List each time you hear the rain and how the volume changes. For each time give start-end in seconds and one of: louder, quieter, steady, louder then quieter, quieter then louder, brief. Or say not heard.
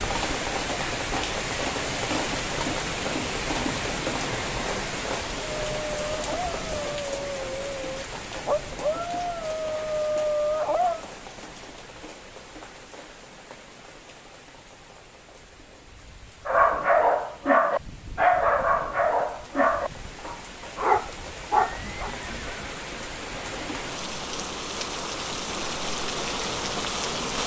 0.0-27.4 quieter then louder.